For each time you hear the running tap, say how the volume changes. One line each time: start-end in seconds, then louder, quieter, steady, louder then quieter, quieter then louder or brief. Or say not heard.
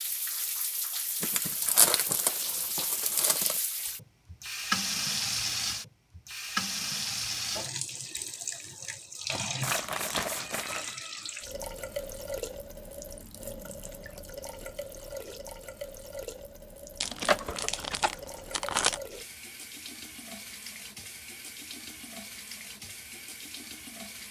0.0-24.2 quieter.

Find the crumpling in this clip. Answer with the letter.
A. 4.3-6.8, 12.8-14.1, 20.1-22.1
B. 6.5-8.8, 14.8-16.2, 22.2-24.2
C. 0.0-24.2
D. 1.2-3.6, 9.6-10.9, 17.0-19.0
D.